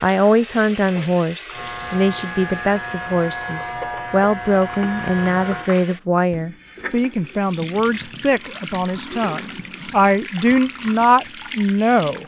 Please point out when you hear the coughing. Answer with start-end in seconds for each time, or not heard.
not heard.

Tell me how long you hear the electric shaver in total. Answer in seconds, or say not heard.
4 s.